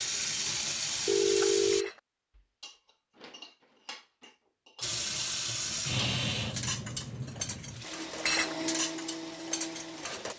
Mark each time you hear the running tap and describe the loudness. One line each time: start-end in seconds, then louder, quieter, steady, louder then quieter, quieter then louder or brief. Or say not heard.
0.0-1.9 brief
4.8-10.3 quieter.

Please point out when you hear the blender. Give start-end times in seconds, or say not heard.
7.8-10.3.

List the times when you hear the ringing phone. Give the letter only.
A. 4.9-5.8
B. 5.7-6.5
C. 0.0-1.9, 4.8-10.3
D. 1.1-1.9
D.